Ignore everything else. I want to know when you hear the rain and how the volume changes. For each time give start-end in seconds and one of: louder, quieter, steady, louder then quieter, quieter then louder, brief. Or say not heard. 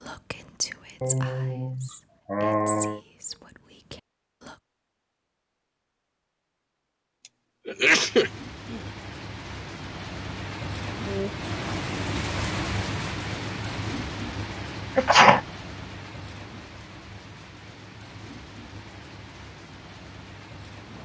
7.7-21.0 louder then quieter.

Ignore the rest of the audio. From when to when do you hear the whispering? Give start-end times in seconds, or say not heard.
0.0-4.5.